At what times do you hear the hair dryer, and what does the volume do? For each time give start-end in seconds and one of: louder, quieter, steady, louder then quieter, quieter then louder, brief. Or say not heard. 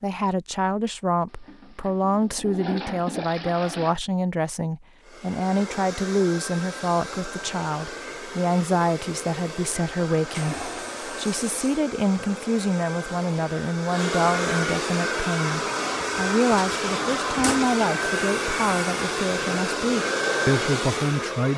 5.0-21.5 louder.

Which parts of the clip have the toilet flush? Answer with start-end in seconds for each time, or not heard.
1.3-4.0, 10.2-11.8, 16.6-17.9.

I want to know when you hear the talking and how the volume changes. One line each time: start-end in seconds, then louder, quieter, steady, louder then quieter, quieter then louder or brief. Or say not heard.
0.0-21.5 steady.